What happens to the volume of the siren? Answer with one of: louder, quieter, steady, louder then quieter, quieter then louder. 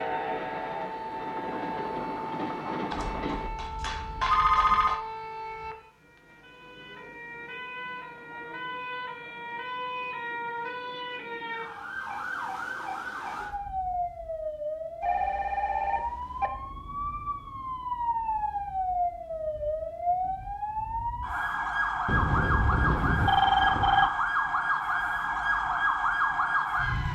louder.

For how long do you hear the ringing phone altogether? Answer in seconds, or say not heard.
6 s.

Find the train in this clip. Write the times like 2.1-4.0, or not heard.
0.0-3.5.